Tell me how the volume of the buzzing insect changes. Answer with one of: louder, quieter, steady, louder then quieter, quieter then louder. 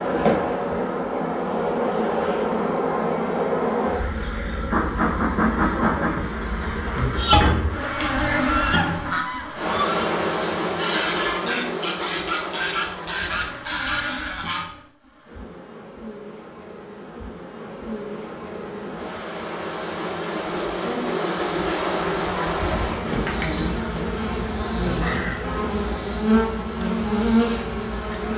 quieter then louder.